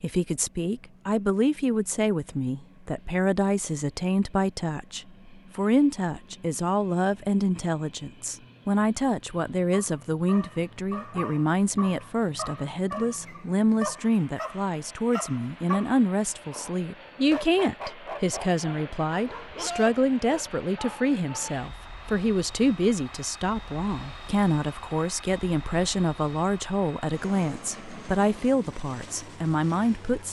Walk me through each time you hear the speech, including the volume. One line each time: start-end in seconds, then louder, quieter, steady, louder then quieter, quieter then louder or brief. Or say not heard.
0.0-30.2 steady.